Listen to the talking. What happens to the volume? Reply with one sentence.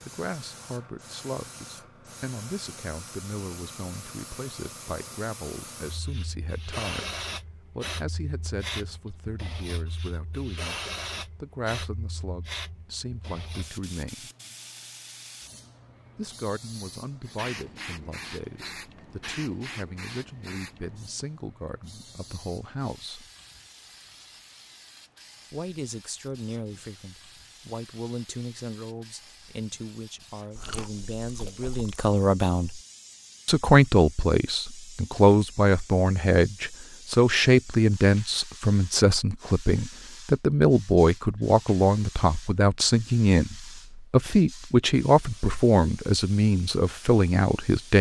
The volume of the talking goes up.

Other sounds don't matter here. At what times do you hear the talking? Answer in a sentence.
You can hear the talking from 0.0 to 14.3 s, from 16.1 to 23.3 s, from 25.5 to 32.8 s and from 33.5 to 47.9 s.